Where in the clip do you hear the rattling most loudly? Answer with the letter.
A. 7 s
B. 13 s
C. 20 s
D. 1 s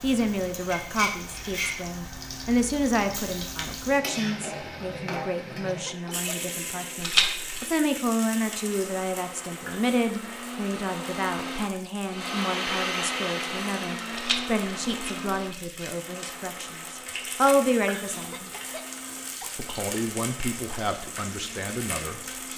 A.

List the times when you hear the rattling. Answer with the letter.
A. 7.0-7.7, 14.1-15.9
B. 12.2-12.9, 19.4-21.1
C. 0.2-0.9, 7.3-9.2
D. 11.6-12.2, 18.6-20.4
A.